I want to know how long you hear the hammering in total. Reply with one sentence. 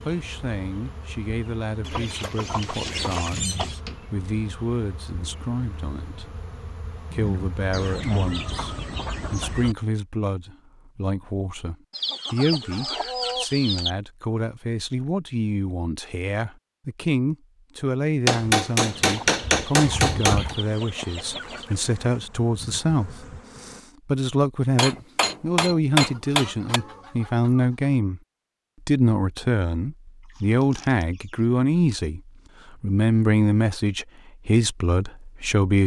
The hammering can be heard for 6 seconds in total.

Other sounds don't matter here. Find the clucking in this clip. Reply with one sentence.
The clucking can be heard from 1.8 to 3.8 s, from 7.7 to 9.8 s, from 11.9 to 13.9 s, from 19.0 to 21.8 s, from 25.9 to 27.9 s and from 30.3 to 32.0 s.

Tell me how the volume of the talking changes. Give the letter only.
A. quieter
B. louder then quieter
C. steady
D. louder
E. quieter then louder
D.